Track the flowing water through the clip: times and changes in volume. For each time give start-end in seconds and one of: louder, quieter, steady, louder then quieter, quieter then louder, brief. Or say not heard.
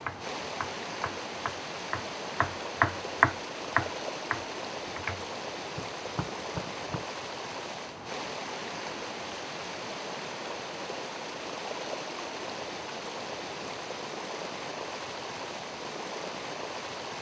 0.0-17.1 steady.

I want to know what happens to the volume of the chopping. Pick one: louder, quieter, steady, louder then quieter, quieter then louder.
louder then quieter.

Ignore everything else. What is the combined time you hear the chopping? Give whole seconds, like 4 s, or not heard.
7 s.